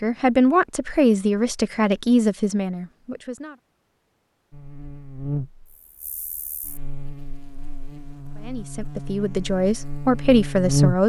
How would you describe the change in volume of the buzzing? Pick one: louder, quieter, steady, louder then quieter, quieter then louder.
quieter then louder.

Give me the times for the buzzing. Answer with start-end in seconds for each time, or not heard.
4.5-11.0.